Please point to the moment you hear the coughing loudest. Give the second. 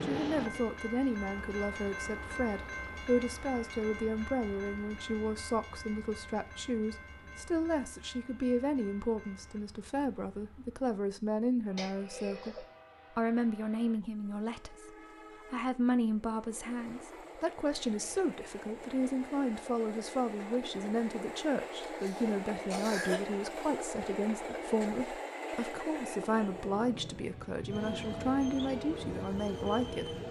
23 s.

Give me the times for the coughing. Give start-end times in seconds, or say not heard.
11.8-12.7, 21.8-23.2.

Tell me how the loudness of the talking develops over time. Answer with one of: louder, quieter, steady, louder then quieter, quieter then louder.
steady.